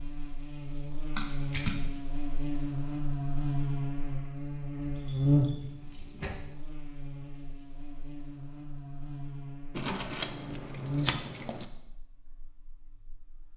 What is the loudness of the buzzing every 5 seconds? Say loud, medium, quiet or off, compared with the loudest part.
loud, loud, medium.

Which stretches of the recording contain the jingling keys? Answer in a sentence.
You can hear the jingling keys from 1.1 to 1.8 s, from 5.0 to 6.3 s and from 9.8 to 11.7 s.